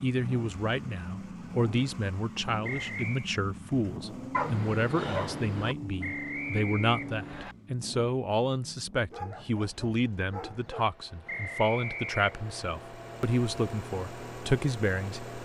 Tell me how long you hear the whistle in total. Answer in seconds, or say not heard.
4 s.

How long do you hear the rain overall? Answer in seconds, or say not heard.
not heard.